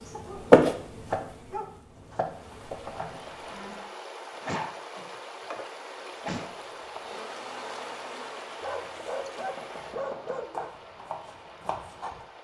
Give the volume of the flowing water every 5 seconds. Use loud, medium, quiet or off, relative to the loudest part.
loud, loud, medium.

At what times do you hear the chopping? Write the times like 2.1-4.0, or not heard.
0.0-3.8, 9.3-12.2.